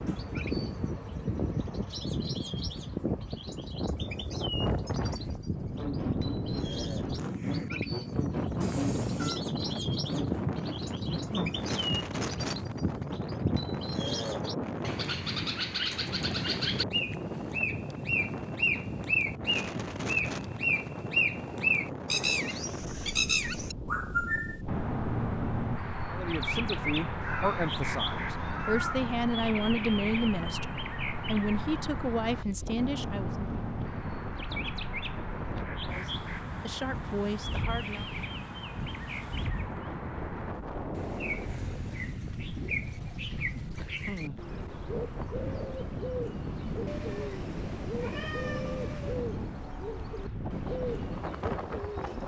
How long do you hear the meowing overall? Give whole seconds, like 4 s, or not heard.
5 s.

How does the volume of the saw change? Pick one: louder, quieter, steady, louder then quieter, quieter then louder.
steady.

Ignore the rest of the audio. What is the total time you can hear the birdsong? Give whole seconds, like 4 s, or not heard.
52 s.